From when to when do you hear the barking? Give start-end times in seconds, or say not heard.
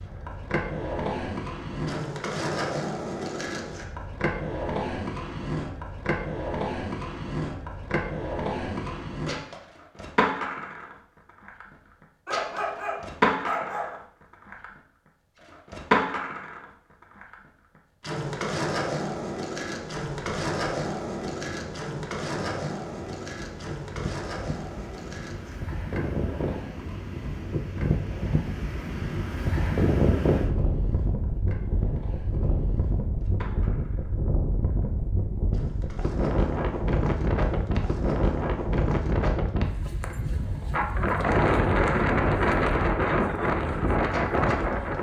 12.2-14.0.